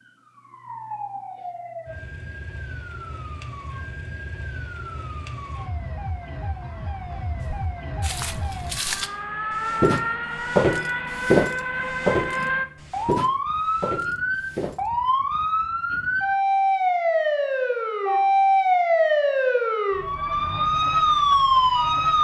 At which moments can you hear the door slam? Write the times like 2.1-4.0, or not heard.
not heard.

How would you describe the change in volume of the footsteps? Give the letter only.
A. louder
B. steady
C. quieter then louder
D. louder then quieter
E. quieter
D.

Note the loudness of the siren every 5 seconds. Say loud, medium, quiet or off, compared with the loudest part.
quiet, quiet, medium, loud, loud.